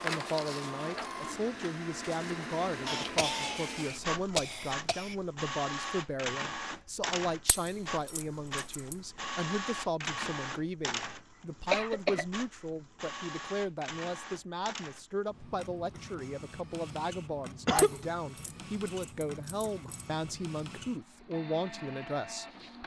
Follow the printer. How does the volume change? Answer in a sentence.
The loudness of the printer goes down.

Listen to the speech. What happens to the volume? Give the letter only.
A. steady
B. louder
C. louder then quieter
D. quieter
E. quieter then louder
A.